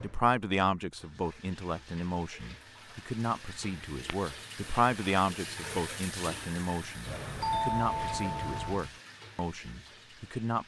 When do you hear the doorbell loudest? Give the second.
8 s.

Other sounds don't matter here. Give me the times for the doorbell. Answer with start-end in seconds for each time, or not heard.
7.0-8.9.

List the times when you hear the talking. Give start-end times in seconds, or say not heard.
0.0-10.6.